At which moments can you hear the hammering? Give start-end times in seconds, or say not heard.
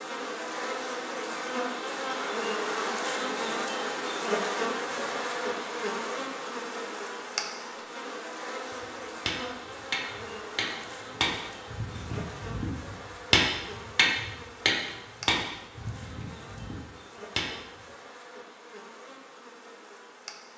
8.8-17.5.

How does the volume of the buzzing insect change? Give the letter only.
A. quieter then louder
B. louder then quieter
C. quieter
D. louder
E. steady
C.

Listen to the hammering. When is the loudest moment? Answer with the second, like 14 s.
13 s.